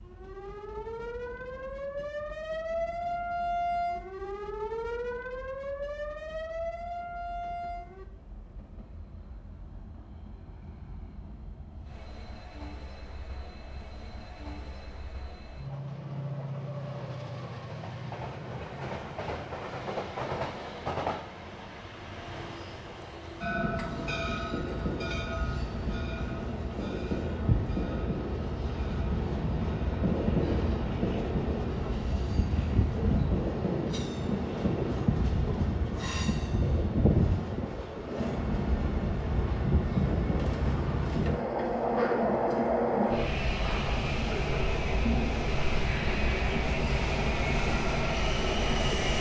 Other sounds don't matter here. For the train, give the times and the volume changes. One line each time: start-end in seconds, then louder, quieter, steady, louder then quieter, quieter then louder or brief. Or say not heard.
0.0-49.1 louder.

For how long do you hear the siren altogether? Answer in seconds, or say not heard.
8 s.